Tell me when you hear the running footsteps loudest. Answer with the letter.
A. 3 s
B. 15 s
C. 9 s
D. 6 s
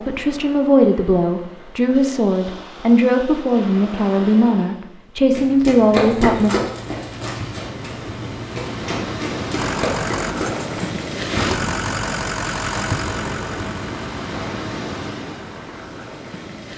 D.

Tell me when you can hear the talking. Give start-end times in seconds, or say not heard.
0.1-6.5.